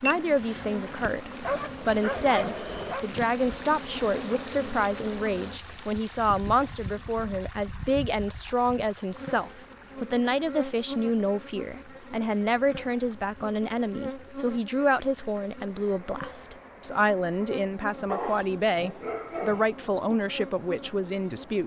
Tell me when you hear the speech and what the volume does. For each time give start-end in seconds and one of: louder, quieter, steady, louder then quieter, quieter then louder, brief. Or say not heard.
0.0-21.6 steady.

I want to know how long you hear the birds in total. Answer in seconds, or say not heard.
not heard.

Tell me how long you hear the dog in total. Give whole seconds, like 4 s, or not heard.
4 s.